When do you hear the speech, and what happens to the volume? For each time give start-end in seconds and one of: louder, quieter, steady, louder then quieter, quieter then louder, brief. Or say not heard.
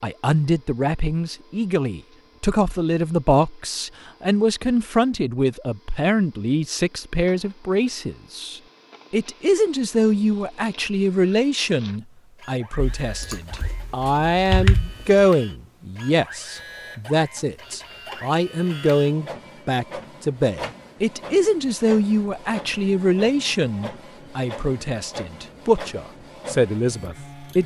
0.0-27.6 steady.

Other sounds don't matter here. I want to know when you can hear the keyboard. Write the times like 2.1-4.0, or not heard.
12.8-15.2.